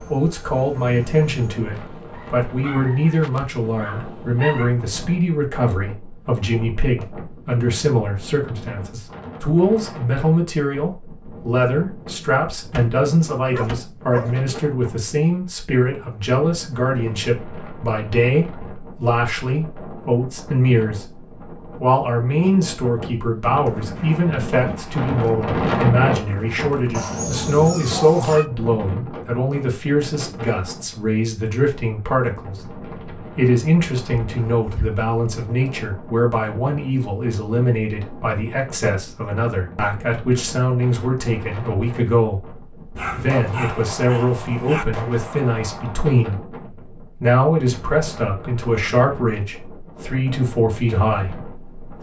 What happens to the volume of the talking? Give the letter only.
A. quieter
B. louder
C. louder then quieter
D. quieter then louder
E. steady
E.